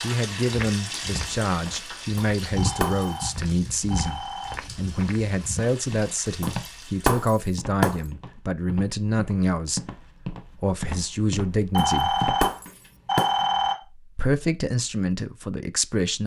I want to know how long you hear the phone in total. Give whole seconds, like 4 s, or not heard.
4 s.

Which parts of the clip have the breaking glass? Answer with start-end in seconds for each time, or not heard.
2.1-3.0, 6.4-8.0, 11.8-13.3.